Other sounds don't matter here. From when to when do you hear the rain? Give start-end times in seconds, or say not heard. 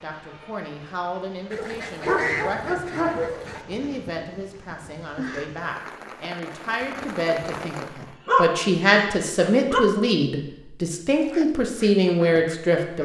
0.0-8.2.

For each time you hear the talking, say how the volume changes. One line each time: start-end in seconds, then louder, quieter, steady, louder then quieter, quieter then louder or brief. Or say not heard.
0.0-13.0 louder.